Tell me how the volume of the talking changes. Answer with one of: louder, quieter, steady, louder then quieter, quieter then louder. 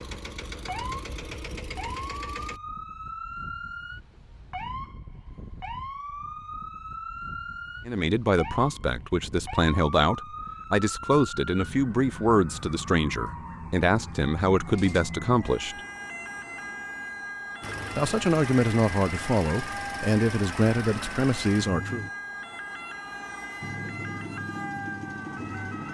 steady.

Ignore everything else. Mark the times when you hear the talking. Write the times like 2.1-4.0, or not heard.
7.8-15.8, 17.9-22.1.